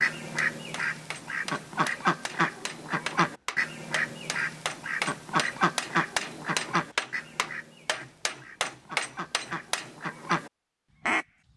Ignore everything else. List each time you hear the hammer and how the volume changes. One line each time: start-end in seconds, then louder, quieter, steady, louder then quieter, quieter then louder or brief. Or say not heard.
0.1-9.9 louder.